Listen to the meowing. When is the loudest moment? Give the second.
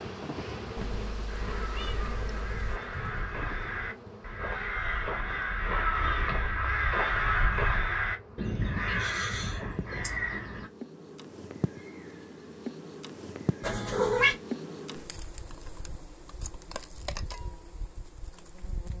14 s.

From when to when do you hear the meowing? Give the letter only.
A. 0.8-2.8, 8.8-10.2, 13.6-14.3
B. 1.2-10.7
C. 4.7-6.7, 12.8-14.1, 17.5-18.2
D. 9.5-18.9
A.